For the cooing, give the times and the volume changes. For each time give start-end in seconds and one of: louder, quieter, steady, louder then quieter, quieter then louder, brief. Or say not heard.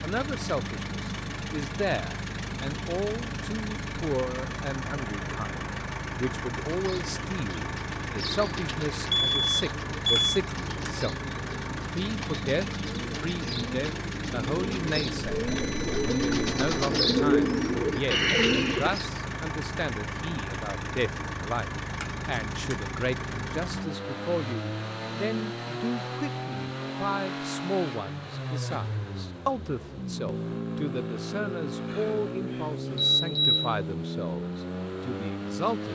6.8-19.1 louder.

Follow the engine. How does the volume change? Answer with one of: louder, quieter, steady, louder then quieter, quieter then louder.
steady.